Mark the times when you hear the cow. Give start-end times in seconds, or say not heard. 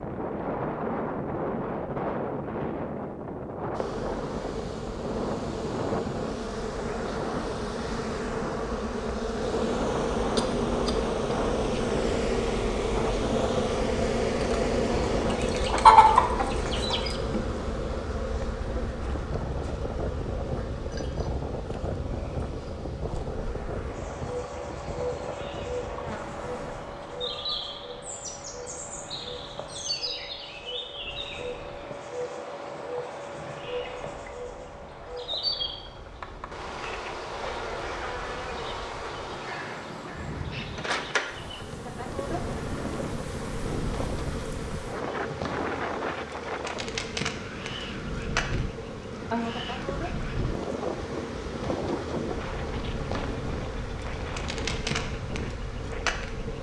not heard.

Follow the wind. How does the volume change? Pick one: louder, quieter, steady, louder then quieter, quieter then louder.
quieter then louder.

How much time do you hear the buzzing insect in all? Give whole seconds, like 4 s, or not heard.
53 s.